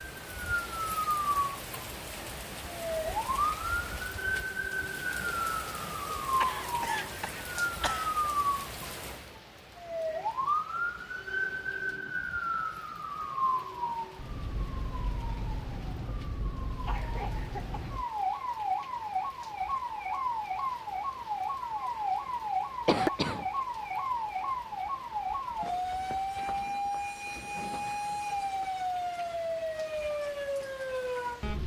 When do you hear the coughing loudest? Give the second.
23 s.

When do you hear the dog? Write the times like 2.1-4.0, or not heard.
not heard.